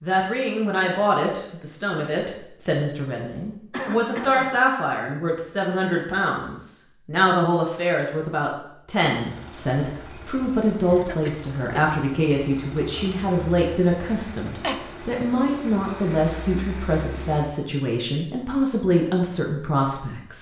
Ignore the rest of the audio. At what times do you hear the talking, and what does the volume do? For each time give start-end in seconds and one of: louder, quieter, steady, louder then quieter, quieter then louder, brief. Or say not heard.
0.0-20.3 steady.